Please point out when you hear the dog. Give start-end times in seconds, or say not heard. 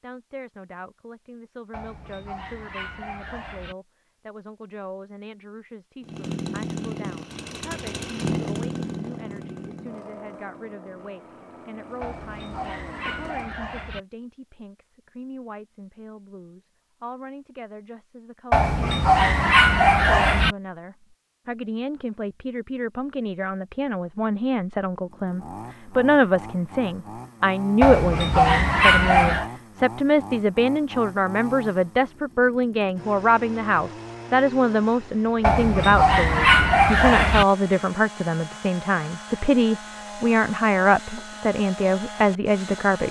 1.7-3.8, 12.0-14.0, 18.5-20.6, 27.8-29.5, 35.4-37.5.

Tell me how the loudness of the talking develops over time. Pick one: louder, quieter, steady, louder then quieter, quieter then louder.
louder.